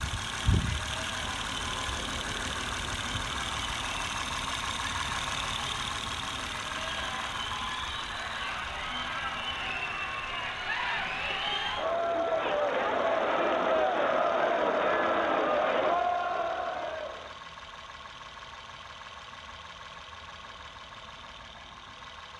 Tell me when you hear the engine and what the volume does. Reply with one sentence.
You can hear the engine from 0.0 to 22.3 s, getting quieter.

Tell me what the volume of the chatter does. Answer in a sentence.
The volume of the chatter goes up.